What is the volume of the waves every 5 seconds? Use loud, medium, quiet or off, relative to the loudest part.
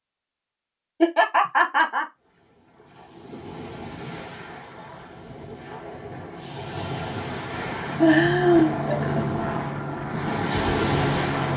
quiet, medium, loud.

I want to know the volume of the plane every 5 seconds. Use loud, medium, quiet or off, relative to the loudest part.
off, loud, loud.